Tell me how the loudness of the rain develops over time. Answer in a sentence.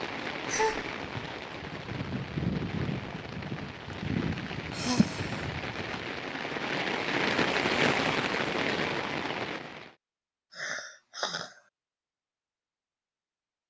The volume of the rain goes up.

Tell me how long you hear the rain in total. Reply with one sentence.
You can hear the rain for 10 seconds altogether.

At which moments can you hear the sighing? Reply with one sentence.
The sighing can be heard from 0.5 to 0.9 s, from 4.7 to 5.5 s and from 10.6 to 11.6 s.